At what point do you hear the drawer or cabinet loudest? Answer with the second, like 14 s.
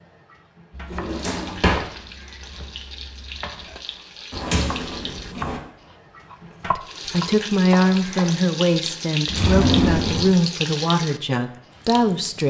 10 s.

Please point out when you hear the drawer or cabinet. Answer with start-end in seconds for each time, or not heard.
0.9-1.9, 4.3-5.6, 9.2-10.3.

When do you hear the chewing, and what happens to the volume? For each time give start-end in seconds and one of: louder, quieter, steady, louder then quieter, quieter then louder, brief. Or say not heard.
not heard.